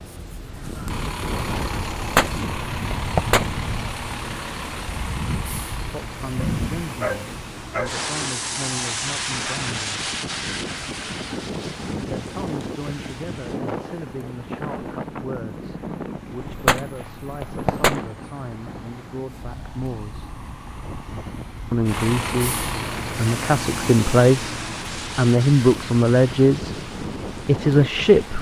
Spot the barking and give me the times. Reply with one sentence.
The barking can be heard from 6.4 to 8.0 s.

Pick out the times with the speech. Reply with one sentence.
You can hear the speech from 5.8 to 9.9 s, from 12.0 to 20.3 s and from 21.7 to 28.3 s.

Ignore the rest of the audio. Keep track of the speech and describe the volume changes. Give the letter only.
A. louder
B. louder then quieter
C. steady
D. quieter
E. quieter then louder
A.